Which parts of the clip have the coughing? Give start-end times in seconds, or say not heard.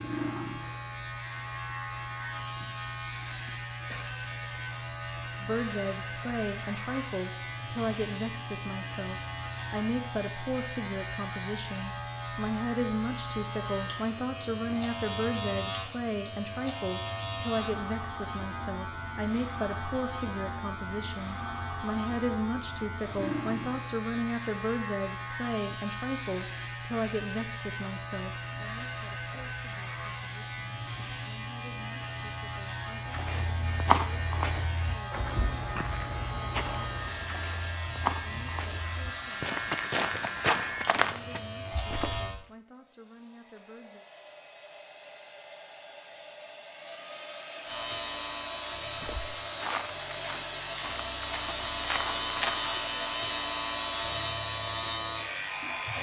3.4-4.1.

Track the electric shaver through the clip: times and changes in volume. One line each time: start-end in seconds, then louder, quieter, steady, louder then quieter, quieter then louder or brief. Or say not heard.
0.0-42.4 steady
47.6-55.9 louder.